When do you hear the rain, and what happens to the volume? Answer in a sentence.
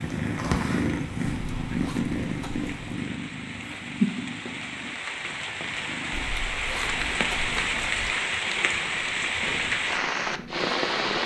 You can hear the rain from 0.0 to 11.2 s, getting louder.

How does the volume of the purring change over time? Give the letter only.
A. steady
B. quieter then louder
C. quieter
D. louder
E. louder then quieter
C.